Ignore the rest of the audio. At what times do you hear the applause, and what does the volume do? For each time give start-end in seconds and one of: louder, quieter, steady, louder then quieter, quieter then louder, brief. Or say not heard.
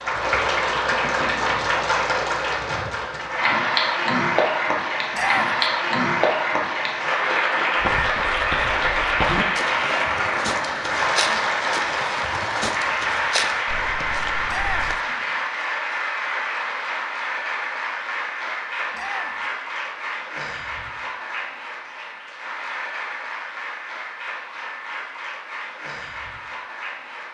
0.0-27.3 quieter.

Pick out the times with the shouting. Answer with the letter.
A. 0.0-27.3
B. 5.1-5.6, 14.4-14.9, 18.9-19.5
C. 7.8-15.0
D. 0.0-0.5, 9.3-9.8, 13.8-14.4
B.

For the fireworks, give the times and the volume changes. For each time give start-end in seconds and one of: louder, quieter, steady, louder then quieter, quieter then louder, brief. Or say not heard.
not heard.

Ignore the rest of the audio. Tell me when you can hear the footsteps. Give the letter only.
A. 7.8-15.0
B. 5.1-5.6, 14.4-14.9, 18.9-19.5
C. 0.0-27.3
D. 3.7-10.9
A.